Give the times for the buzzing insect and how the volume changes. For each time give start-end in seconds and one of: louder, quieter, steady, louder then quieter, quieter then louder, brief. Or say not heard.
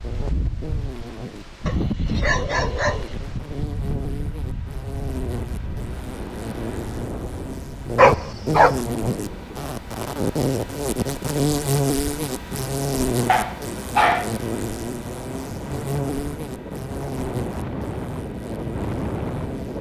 0.0-19.7 louder then quieter.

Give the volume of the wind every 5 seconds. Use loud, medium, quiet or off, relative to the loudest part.
loud, medium, medium, loud.